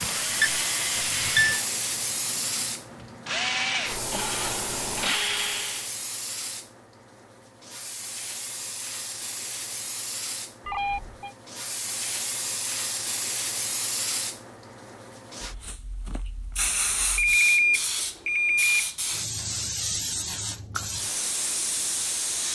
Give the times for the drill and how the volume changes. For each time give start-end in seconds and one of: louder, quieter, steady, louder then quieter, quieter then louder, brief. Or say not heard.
0.0-5.9 quieter then louder.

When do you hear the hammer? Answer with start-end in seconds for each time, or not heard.
not heard.